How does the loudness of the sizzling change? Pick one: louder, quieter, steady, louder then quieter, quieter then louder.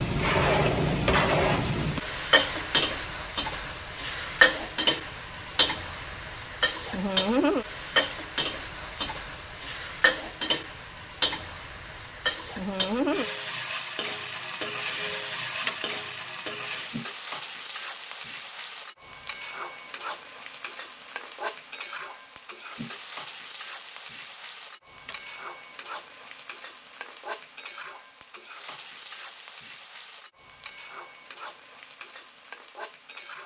quieter.